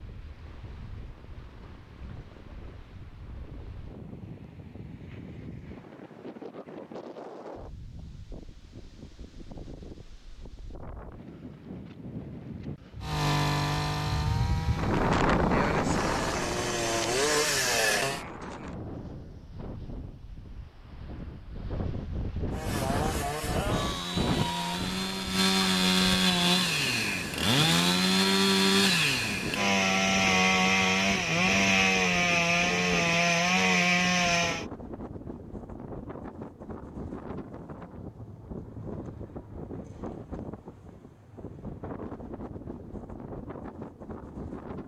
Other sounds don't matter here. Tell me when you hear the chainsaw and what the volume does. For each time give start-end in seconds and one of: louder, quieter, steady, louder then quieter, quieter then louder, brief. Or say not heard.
13.0-18.2 quieter then louder
22.5-34.6 louder.